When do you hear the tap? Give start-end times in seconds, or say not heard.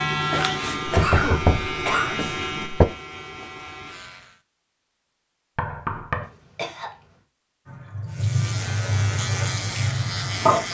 7.7-10.6.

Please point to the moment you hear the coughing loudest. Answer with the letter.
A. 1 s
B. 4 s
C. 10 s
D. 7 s
A.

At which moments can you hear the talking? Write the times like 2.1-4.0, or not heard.
not heard.